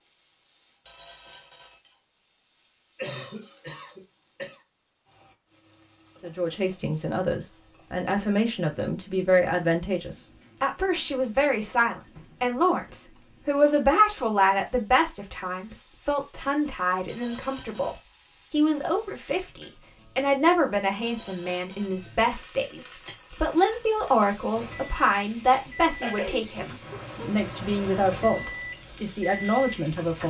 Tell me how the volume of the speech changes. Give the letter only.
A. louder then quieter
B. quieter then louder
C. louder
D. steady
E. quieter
D.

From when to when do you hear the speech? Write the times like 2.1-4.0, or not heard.
6.2-30.2.